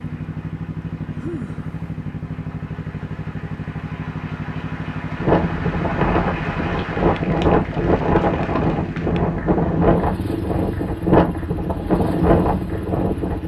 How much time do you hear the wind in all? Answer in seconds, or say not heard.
8 s.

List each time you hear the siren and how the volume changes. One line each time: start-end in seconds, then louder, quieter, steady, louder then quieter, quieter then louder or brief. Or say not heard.
not heard.